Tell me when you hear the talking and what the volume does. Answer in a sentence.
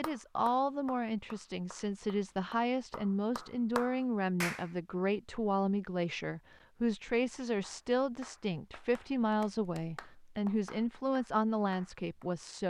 You can hear the talking from 0.0 to 12.6 s, at a steady volume.